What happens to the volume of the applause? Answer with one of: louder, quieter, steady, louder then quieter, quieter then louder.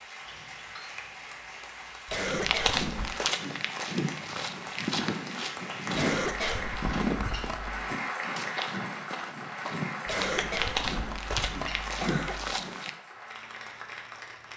louder then quieter.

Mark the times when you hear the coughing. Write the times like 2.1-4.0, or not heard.
2.0-3.1, 6.0-7.8, 10.1-12.6.